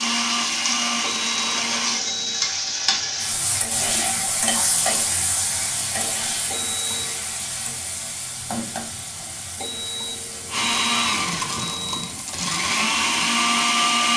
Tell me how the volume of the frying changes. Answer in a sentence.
The volume of the frying goes down.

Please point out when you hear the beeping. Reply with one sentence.
You can hear the beeping from 1.0 to 2.5 s, from 6.5 to 7.2 s and from 9.6 to 12.2 s.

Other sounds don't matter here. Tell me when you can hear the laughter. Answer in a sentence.
You can't hear the laughter here.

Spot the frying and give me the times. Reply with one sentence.
You can hear the frying from 0.0 to 14.1 s.